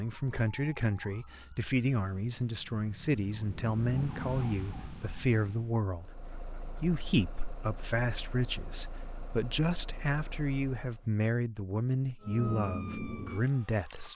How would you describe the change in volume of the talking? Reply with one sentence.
The volume of the talking stays about the same.